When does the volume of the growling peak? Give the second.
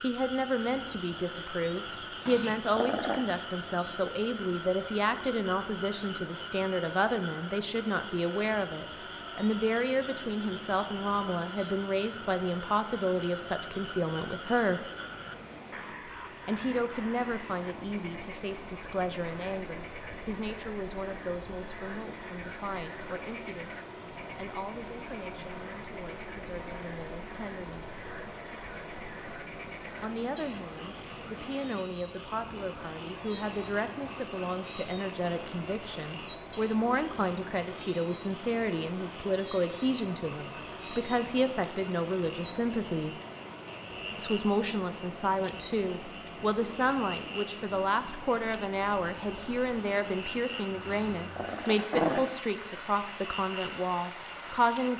52 s.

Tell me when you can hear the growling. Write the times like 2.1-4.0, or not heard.
2.2-3.2, 50.9-52.2.